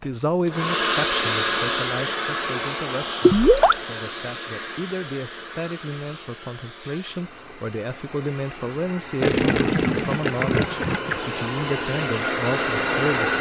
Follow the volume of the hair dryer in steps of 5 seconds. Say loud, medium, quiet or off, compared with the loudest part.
loud, quiet, loud.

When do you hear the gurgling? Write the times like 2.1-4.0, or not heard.
3.2-3.9, 9.2-11.2.